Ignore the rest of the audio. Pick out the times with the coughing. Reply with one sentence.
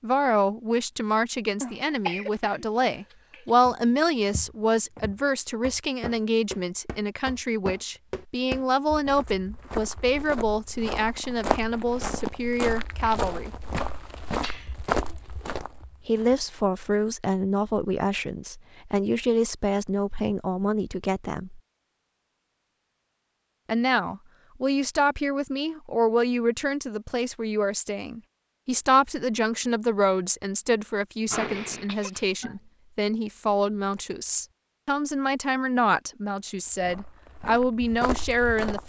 The coughing can be heard from 1.6 to 3.5 s, from 14.4 to 14.9 s and from 31.2 to 32.5 s.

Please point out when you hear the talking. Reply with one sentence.
You can hear the talking from 0.0 to 13.5 s, from 16.1 to 21.6 s and from 23.6 to 38.8 s.